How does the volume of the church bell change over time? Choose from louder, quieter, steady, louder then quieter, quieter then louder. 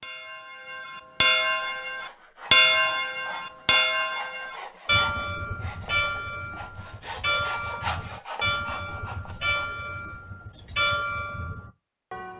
quieter.